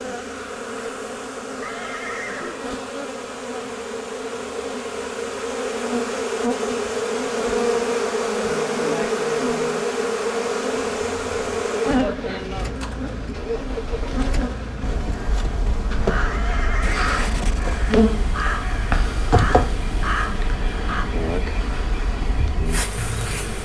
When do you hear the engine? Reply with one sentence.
The engine can be heard from 10.9 to 23.6 s.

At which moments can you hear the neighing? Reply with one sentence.
You can hear the neighing from 1.6 to 2.9 s and from 16.3 to 17.1 s.